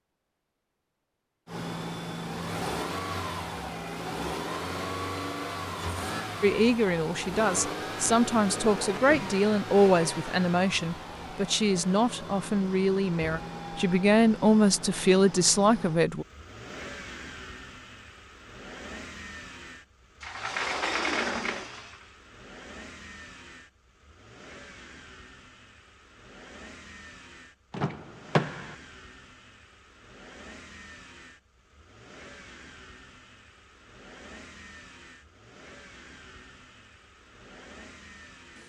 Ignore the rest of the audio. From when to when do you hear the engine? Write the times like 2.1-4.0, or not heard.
1.4-38.6.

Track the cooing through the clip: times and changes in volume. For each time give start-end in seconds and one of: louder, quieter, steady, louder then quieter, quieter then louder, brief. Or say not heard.
not heard.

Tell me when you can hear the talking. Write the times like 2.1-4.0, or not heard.
6.4-16.2.